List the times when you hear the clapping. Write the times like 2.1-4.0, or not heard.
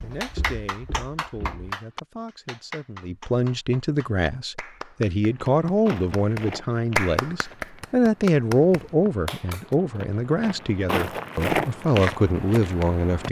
0.2-9.8.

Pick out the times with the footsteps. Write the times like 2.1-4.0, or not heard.
0.0-1.7, 5.3-13.2.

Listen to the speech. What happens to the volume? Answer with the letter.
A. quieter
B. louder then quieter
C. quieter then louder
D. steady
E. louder
E.